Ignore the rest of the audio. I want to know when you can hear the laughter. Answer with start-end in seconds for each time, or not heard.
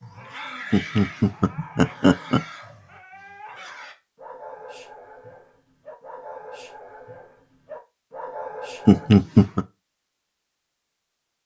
0.7-2.4, 8.8-9.7.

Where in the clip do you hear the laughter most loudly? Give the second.
9 s.